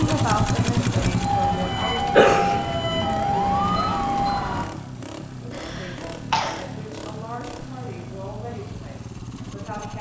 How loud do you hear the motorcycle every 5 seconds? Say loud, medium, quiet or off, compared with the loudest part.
loud, medium.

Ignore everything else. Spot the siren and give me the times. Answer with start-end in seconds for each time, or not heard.
0.0-4.7.